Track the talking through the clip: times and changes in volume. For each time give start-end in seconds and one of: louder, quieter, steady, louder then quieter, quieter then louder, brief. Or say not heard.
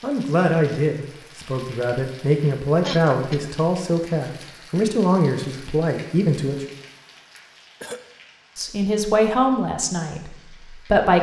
0.0-6.7 steady
8.6-11.1 brief.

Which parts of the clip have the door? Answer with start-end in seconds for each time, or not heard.
not heard.